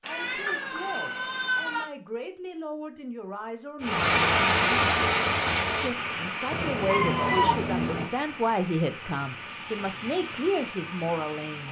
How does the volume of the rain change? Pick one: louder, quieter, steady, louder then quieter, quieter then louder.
quieter.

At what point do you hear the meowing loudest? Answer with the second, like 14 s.
7 s.